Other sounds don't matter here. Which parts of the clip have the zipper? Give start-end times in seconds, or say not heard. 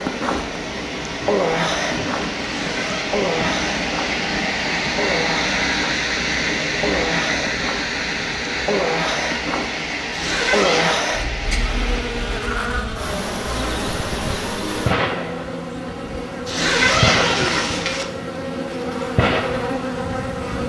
2.5-3.0, 10.1-11.0, 16.4-18.1.